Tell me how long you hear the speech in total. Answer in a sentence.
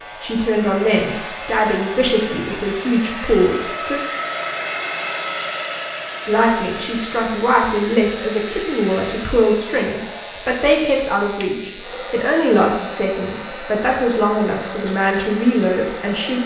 The speech can be heard for 14 seconds in total.